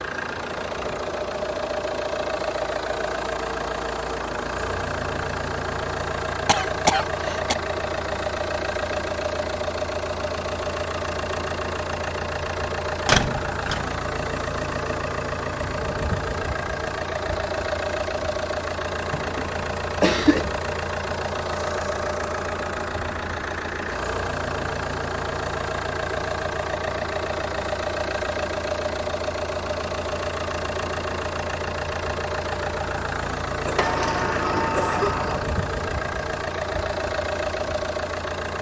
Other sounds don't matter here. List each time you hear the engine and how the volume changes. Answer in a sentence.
The engine can be heard from 0.0 to 38.5 s, at a steady volume.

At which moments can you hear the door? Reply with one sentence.
The door can be heard from 13.1 to 13.9 s and from 33.8 to 35.5 s.